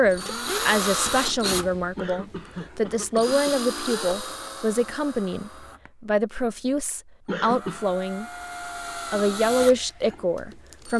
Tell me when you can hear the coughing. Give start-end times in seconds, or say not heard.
1.9-3.5, 7.2-7.9.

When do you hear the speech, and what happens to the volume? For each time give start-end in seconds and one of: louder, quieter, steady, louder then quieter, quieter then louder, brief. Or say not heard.
0.0-8.2 steady
8.9-10.9 brief.